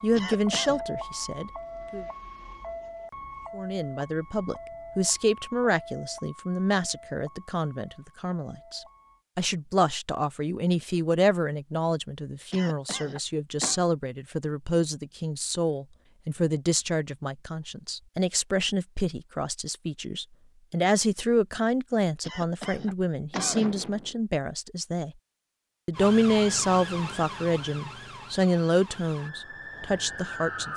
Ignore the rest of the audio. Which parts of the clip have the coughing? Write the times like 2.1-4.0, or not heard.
0.1-0.8, 12.5-13.8, 22.2-24.1.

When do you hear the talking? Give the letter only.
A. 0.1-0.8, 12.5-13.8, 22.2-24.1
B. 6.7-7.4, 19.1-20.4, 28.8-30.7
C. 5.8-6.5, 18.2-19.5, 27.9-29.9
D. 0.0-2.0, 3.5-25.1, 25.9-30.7
D.